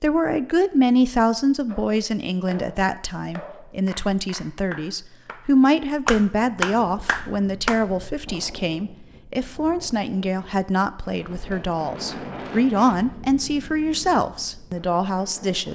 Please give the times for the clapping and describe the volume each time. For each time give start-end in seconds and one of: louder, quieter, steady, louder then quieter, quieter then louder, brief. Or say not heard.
1.6-8.1 louder.